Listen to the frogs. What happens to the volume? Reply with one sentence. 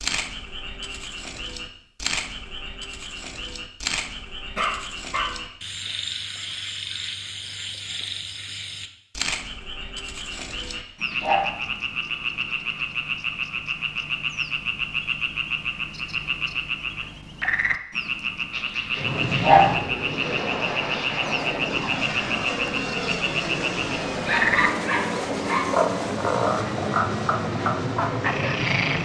The loudness of the frogs goes up.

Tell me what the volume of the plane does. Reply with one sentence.
The loudness of the plane stays about the same.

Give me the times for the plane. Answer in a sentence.
The plane can be heard from 18.9 to 29.0 s.